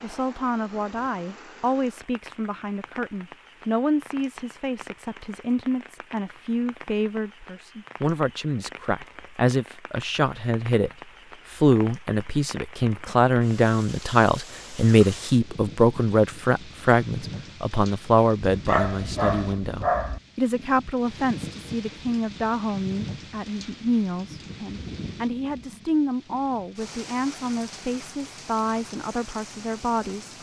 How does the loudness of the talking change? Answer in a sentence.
The volume of the talking goes up, then down.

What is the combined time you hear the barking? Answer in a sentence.
You can hear the barking for 2 seconds altogether.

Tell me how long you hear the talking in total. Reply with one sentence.
You can hear the talking for 30 seconds altogether.